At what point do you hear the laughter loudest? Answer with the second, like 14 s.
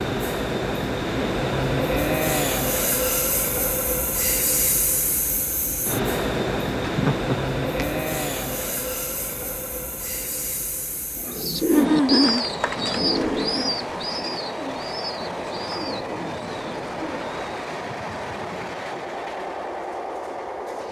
12 s.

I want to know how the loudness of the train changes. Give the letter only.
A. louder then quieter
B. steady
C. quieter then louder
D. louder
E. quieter
E.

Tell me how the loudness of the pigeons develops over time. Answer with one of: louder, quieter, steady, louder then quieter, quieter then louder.
quieter.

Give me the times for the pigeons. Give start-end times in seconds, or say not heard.
11.2-17.6.